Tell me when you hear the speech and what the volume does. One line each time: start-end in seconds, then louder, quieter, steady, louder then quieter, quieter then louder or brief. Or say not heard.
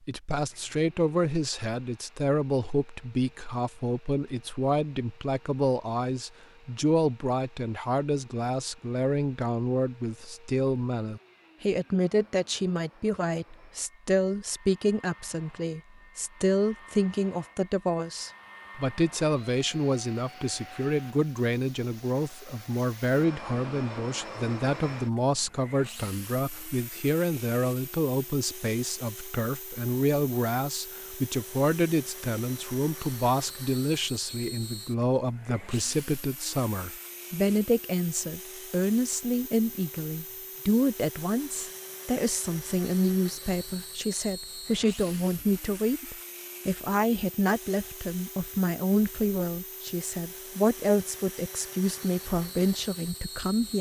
0.1-53.7 steady.